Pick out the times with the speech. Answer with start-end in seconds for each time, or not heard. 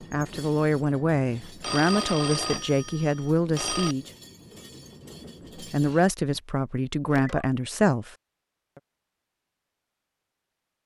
0.1-4.1, 5.5-8.1.